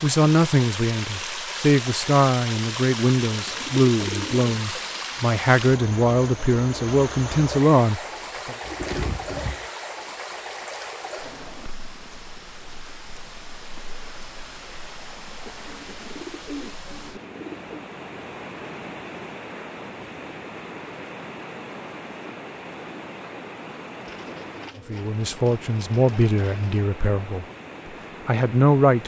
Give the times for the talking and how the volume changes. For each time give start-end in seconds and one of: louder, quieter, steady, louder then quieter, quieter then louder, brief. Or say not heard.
0.0-8.6 steady
24.9-27.4 brief
28.2-29.0 brief.